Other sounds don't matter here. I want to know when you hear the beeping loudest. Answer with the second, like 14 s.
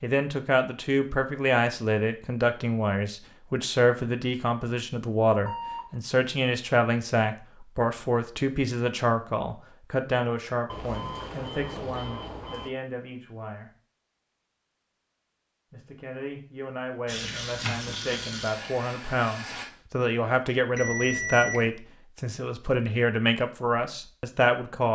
21 s.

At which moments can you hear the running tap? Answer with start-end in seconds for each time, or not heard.
17.1-19.6.